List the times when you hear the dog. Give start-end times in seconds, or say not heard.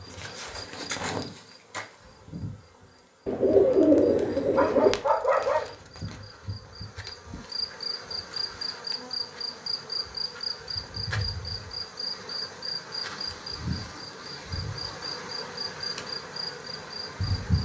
4.5-5.8.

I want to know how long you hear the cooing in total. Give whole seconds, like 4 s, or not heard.
2 s.